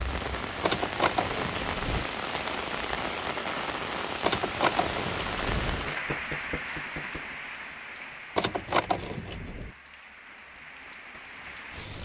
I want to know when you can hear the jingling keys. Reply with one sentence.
You can hear the jingling keys from 0.6 to 2.0 s, from 4.2 to 5.9 s and from 8.3 to 9.7 s.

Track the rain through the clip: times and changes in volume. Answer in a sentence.
You can hear the rain from 0.0 to 12.0 s, getting quieter.